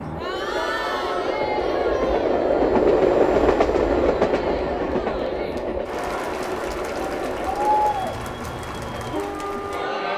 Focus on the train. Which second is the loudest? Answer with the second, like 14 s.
3 s.